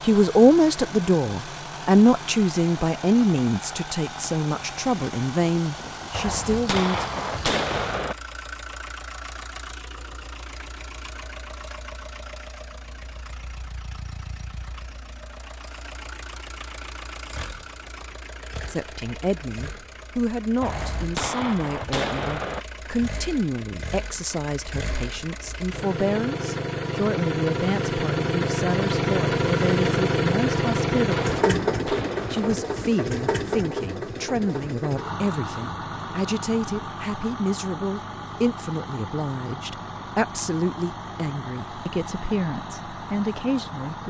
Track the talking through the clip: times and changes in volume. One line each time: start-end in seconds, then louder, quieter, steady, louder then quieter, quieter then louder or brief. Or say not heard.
0.1-7.2 quieter
18.6-44.0 steady.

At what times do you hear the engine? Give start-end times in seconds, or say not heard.
0.0-44.0.